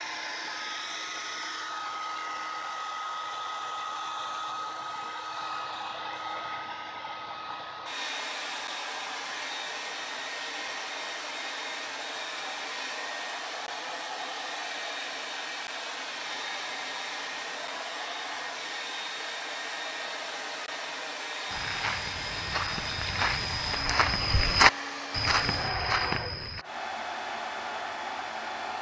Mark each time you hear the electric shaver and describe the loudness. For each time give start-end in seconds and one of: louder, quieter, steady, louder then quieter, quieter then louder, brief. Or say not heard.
not heard.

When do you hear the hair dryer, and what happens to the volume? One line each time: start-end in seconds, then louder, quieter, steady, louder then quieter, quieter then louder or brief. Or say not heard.
0.0-28.7 steady.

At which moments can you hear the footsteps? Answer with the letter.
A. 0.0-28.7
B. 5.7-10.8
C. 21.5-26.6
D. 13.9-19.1
C.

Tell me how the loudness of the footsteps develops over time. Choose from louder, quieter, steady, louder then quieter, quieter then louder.
louder then quieter.